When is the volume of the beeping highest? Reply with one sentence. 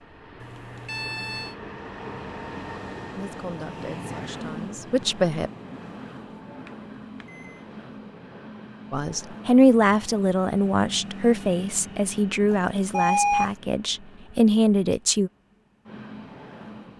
The loudest moment of the beeping is at 13 seconds.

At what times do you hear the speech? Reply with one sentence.
The speech can be heard from 3.1 to 5.5 s and from 8.9 to 15.3 s.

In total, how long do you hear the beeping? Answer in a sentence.
The beeping can be heard for 3 seconds in total.